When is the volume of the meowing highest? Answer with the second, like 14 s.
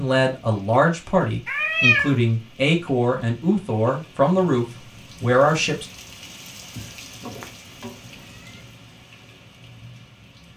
2 s.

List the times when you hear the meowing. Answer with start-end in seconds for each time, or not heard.
1.4-2.1, 6.8-8.6.